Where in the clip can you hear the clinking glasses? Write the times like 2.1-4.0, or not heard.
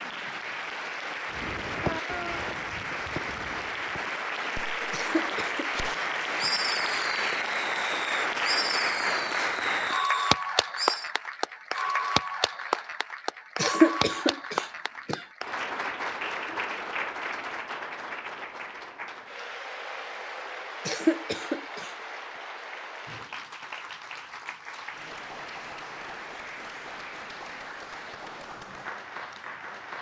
not heard.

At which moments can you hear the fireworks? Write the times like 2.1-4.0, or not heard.
1.3-11.1.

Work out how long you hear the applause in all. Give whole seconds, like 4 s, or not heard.
30 s.